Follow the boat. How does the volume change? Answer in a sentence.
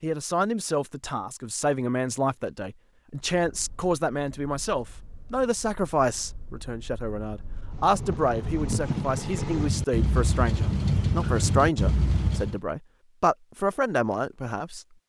The volume of the boat goes up.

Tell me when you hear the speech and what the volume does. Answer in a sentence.
The speech can be heard from 0.0 to 14.8 s, at a steady volume.